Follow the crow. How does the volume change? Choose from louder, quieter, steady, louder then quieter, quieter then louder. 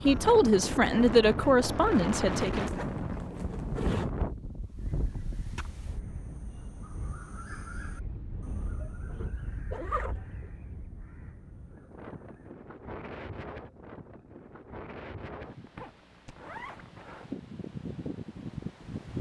louder then quieter.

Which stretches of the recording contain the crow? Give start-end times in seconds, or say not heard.
4.8-12.6.